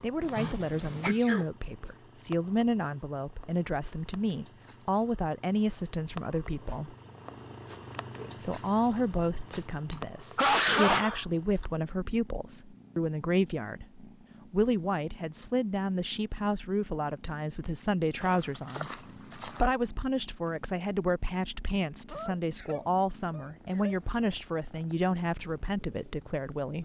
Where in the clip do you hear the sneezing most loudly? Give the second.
11 s.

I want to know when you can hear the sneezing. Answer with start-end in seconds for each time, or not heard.
0.2-1.4, 9.5-11.7, 22.1-24.0.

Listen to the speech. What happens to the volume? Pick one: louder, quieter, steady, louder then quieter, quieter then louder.
steady.